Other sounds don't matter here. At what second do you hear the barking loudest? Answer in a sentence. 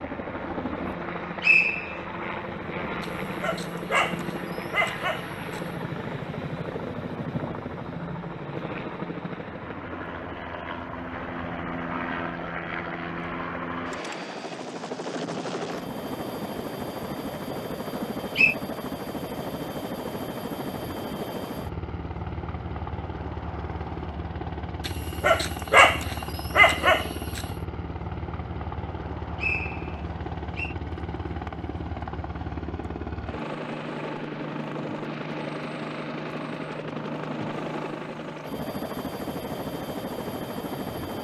The volume of the barking peaks at 26 seconds.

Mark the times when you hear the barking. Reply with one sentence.
The barking can be heard from 3.0 to 5.6 s and from 24.9 to 27.4 s.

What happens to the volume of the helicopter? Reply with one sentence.
The volume of the helicopter stays about the same.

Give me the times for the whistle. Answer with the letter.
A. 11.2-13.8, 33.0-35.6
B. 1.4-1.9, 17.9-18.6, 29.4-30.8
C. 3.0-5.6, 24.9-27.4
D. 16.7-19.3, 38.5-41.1
B.